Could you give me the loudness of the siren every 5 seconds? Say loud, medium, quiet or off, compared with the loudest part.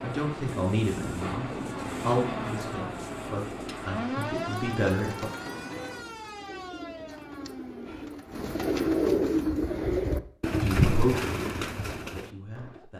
loud, medium, off.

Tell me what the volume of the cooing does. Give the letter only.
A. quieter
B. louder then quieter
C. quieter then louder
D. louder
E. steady
D.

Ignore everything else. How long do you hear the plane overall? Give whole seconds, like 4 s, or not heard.
6 s.